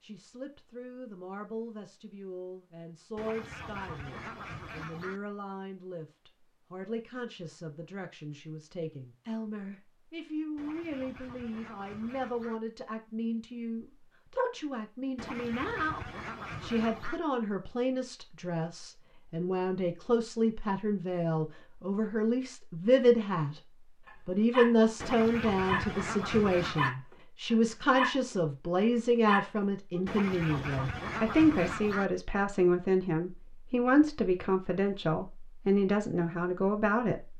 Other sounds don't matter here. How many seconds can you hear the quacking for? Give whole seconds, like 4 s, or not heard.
10 s.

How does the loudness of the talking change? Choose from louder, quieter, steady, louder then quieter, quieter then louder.
louder.